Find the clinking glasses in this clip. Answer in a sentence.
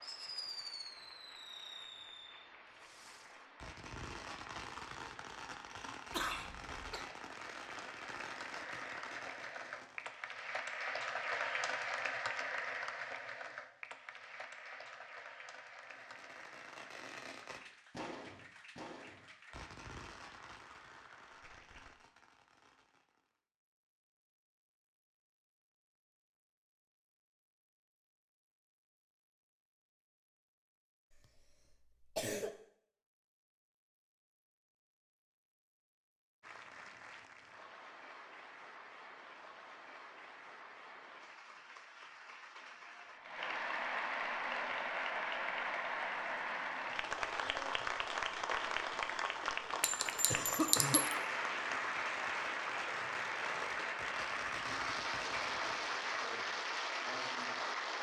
You can hear the clinking glasses from 49.8 to 51.1 s.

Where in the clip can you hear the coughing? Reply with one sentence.
The coughing can be heard from 6.1 to 7.0 s, from 31.1 to 32.5 s and from 50.2 to 51.0 s.